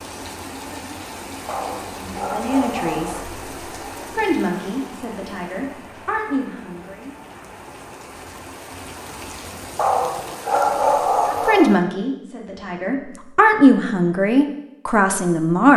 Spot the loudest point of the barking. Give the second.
11 s.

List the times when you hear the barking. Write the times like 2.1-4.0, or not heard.
1.4-3.2, 9.8-11.8.